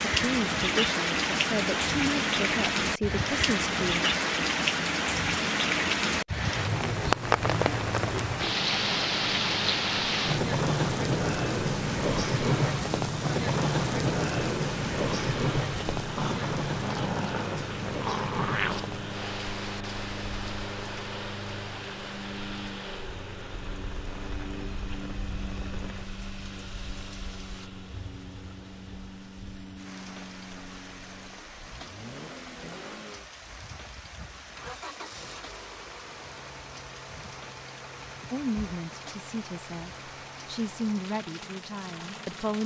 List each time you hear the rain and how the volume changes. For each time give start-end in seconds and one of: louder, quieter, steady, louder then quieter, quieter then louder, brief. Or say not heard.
0.0-42.6 quieter.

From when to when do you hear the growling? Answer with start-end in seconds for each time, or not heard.
16.1-18.9.